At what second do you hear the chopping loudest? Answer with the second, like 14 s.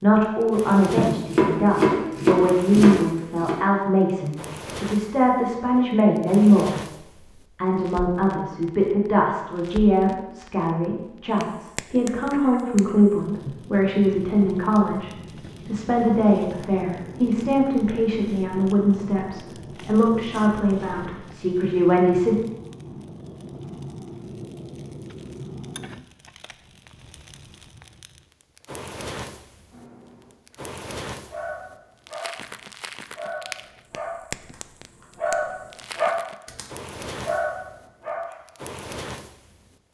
2 s.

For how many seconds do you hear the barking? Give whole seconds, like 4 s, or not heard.
9 s.